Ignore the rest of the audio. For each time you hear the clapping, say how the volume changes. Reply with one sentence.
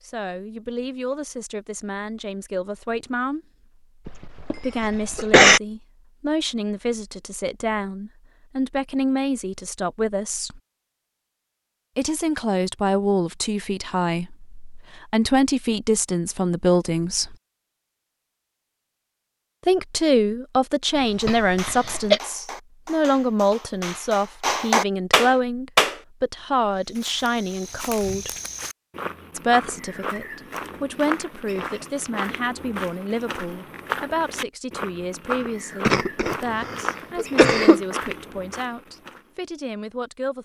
The clapping can be heard from 21.1 to 26.0 s, getting louder.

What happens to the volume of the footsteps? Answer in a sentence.
The volume of the footsteps stays about the same.